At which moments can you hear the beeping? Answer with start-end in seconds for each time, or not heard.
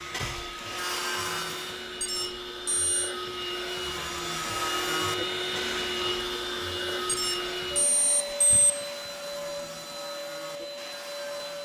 2.0-3.1, 7.0-8.7.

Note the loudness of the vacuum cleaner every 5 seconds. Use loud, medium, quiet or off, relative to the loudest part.
loud, loud, medium.